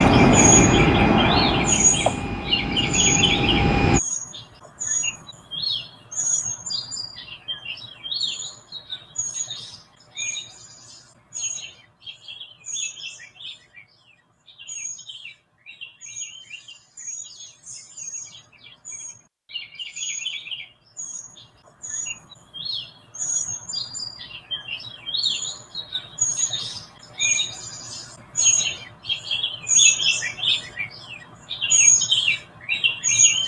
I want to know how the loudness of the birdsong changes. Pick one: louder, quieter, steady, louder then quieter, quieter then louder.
quieter then louder.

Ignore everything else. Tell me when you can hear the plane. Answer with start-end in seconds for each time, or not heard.
0.0-4.0.